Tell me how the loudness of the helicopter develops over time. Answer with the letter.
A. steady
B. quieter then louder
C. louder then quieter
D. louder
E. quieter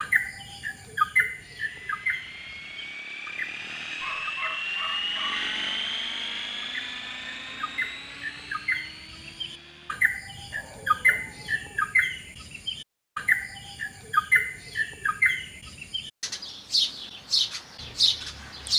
C.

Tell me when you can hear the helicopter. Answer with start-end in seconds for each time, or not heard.
1.3-11.8.